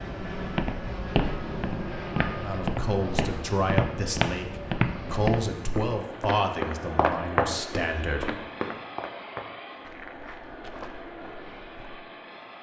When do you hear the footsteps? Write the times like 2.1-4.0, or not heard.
0.3-11.8.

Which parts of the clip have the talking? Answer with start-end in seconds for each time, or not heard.
2.4-8.3.